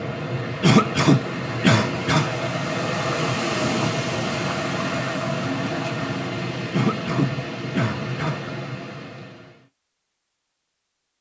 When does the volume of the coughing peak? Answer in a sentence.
The loudest moment of the coughing is at 1 second.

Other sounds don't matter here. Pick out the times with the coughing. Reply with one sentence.
The coughing can be heard from 0.6 to 2.3 s and from 6.7 to 8.4 s.